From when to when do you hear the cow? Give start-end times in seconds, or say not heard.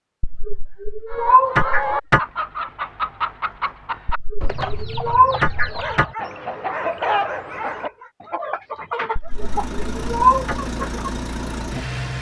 not heard.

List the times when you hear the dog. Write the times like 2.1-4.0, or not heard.
5.3-8.1.